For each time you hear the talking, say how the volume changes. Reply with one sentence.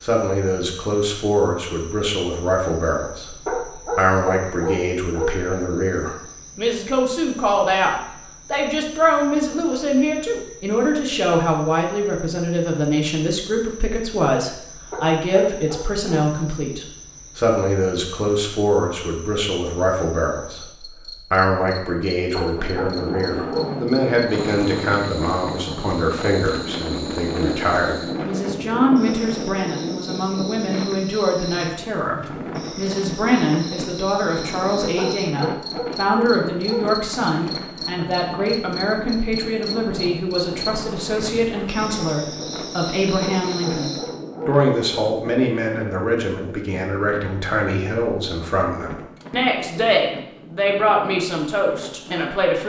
You can hear the talking from 0.0 to 52.6 s, at a steady volume.